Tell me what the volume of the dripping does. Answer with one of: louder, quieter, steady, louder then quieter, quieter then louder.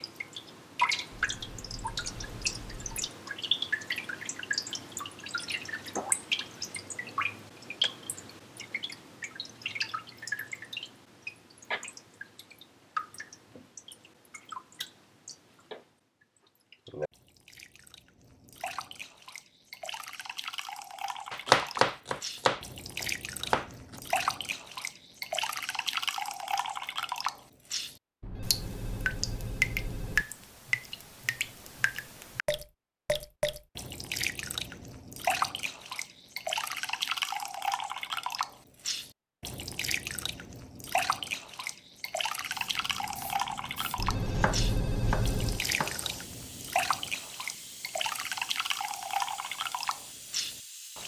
quieter then louder.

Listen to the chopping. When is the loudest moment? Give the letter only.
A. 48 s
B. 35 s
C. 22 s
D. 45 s
C.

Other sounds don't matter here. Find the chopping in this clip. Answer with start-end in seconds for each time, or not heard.
21.3-24.0, 43.8-46.0.